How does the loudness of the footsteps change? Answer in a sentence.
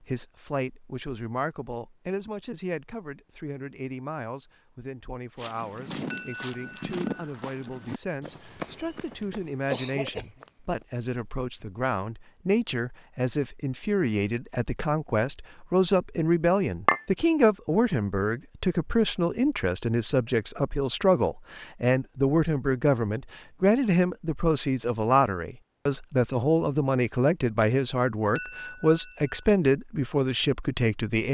The volume of the footsteps goes down.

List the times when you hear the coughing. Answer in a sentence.
The coughing can be heard from 9.7 to 10.3 s.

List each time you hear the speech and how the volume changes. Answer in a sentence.
You can hear the speech from 0.0 to 31.2 s, getting louder.